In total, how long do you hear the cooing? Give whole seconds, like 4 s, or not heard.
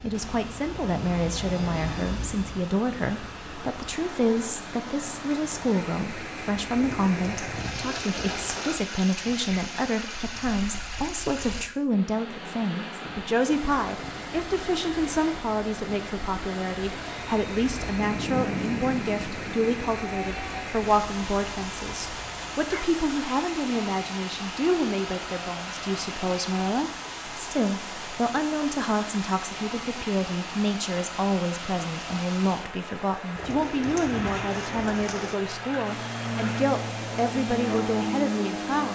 4 s.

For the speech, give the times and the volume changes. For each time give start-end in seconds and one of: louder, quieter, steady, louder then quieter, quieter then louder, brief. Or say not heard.
0.0-38.9 steady.